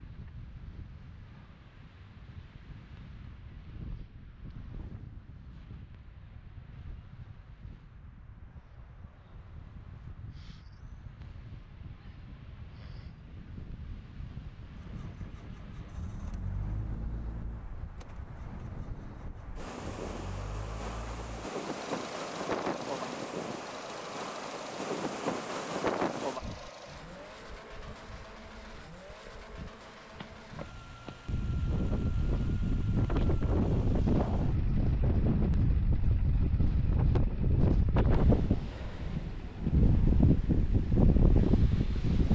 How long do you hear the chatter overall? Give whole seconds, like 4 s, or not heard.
not heard.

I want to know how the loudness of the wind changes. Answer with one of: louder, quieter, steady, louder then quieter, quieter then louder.
louder.